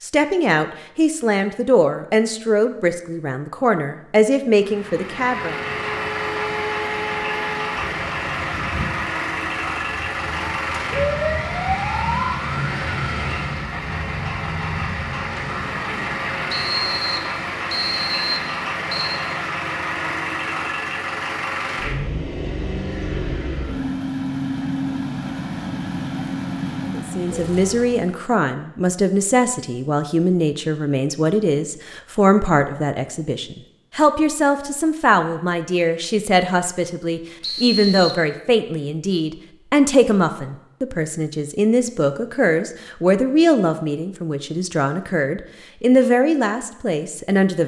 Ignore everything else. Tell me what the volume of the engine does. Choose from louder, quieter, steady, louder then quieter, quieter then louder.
steady.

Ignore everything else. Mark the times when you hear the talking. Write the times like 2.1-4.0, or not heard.
0.0-5.6, 26.9-47.6.